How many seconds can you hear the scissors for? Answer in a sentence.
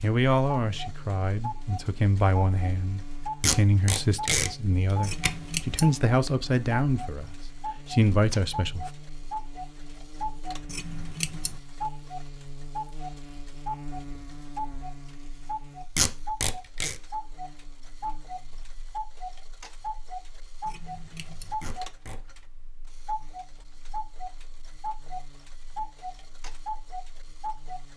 You can hear the scissors for 3 seconds altogether.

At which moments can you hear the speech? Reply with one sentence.
You can hear the speech from 0.0 to 8.9 s.